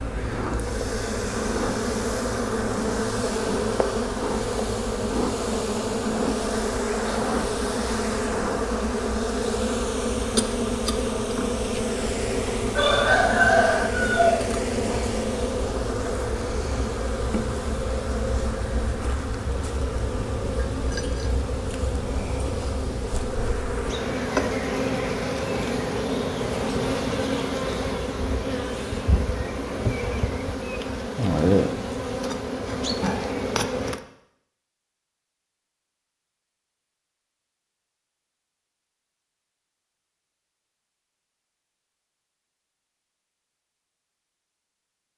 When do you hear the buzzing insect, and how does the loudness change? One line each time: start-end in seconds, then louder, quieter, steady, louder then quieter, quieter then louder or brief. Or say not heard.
0.0-34.0 steady.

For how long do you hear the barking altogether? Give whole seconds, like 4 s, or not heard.
not heard.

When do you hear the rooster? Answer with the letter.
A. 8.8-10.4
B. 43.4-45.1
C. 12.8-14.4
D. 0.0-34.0
C.